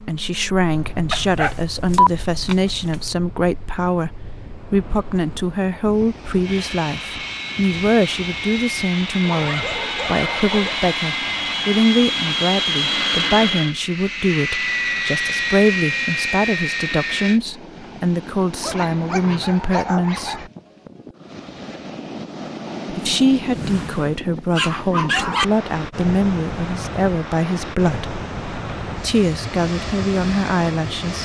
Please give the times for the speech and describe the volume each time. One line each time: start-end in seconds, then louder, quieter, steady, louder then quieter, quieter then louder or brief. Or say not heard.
0.0-20.5 steady
22.9-28.1 steady
29.0-31.2 brief.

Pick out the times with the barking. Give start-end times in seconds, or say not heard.
1.1-3.0, 9.2-10.8, 18.6-20.5, 23.5-25.4.